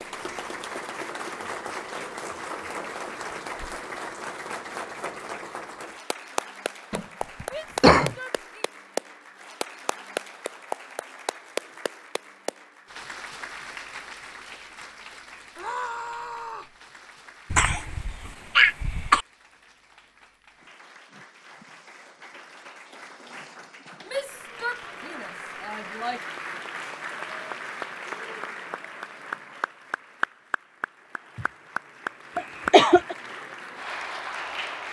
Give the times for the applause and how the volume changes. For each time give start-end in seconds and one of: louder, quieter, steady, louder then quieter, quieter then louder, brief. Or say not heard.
0.0-34.8 quieter then louder.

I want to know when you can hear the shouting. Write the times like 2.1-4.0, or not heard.
7.5-8.7, 15.6-16.8, 24.1-26.2.